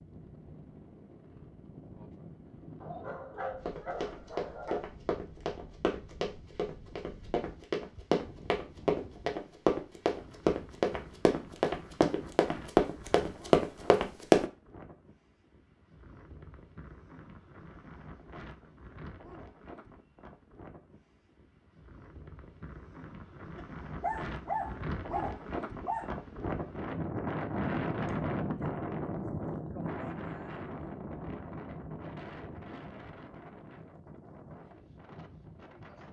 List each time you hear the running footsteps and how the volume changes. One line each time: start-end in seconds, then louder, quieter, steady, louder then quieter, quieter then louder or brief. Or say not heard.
3.6-14.4 louder.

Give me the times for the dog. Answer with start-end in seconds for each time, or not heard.
2.8-4.8, 23.6-26.1.